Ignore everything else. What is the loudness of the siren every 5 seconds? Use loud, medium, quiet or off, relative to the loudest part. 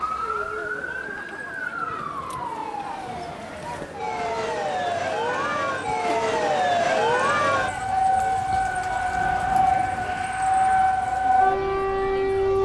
medium, loud, loud.